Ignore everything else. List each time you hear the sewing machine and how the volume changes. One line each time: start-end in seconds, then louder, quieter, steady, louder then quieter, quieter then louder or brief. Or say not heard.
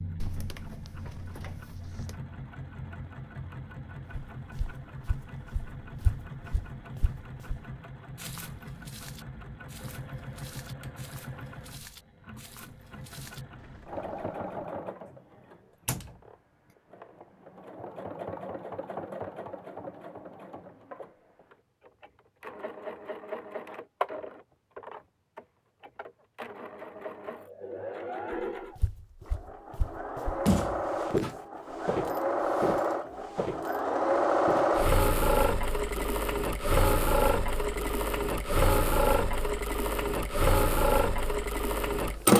0.0-42.3 louder.